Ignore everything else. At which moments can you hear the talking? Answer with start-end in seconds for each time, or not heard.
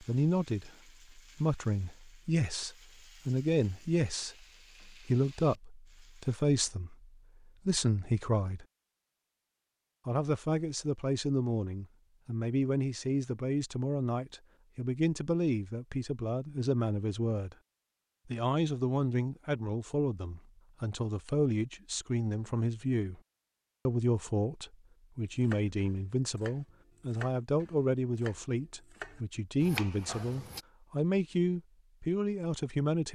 0.0-8.7, 10.1-17.6, 18.2-23.2, 23.9-33.0.